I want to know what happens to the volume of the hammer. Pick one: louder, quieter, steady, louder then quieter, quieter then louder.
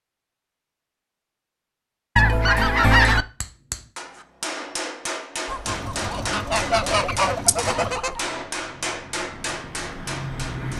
steady.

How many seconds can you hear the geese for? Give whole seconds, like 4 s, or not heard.
4 s.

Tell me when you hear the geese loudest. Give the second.
3 s.